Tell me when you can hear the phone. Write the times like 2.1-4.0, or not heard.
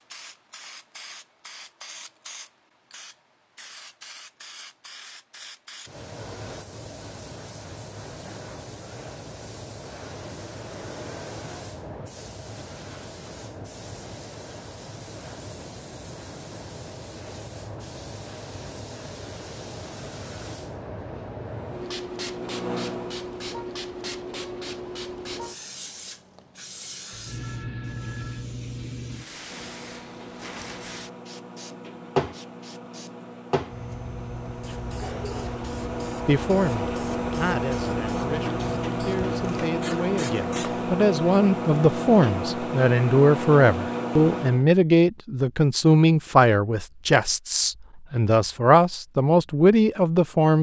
27.1-28.5.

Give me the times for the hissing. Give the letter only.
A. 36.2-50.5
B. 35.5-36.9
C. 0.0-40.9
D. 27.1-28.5
C.